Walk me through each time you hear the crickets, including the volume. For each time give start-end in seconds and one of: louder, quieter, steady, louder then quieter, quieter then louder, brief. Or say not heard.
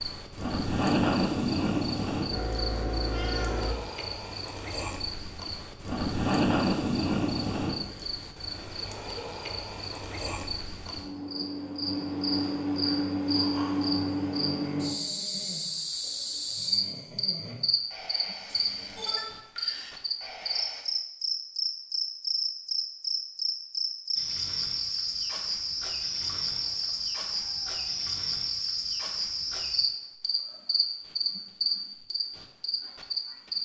0.0-33.6 steady.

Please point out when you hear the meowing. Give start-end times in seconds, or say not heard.
2.3-3.8, 18.4-19.2, 26.1-28.2.